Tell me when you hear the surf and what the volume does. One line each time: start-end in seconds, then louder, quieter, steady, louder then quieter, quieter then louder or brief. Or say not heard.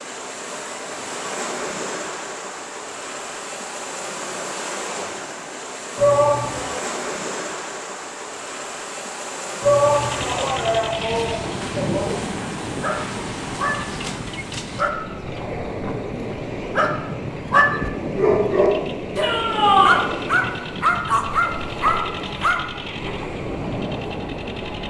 0.0-24.8 steady.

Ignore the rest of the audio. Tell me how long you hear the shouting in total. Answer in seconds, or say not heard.
4 s.